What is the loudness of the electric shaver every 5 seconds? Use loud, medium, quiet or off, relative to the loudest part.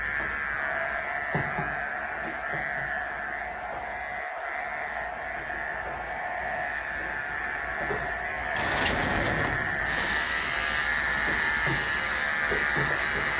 medium, medium, loud.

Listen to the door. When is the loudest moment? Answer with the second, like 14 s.
9 s.